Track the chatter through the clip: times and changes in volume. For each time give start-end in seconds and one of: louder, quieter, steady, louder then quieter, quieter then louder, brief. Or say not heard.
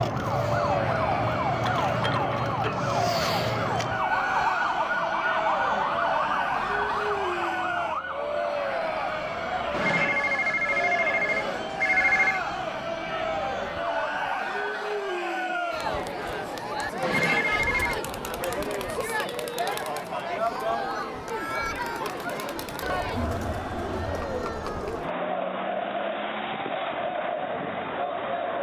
0.1-28.5 steady.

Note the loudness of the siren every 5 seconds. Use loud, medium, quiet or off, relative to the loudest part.
loud, loud, quiet, off, off, off.